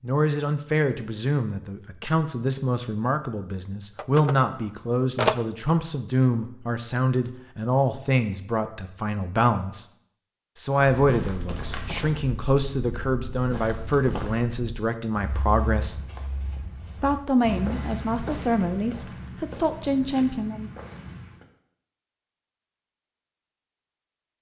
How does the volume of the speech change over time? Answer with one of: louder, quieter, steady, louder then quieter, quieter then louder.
steady.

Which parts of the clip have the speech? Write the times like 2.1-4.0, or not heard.
0.0-9.8, 10.6-16.0, 17.0-20.7.